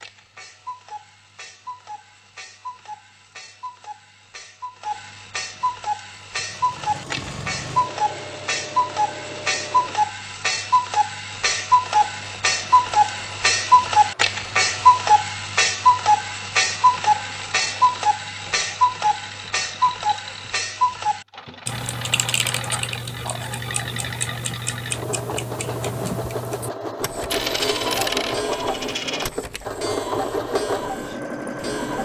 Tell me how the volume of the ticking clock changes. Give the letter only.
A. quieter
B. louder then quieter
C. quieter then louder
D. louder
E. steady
B.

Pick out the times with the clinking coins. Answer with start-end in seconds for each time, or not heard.
27.3-29.3.